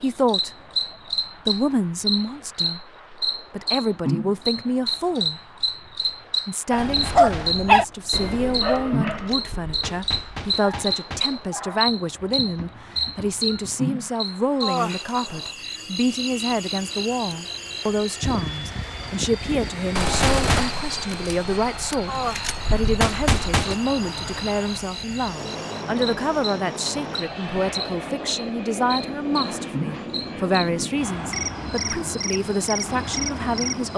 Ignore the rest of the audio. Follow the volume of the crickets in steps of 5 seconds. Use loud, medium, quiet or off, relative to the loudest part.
loud, loud, loud, medium, medium, medium, medium.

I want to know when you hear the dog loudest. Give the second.
8 s.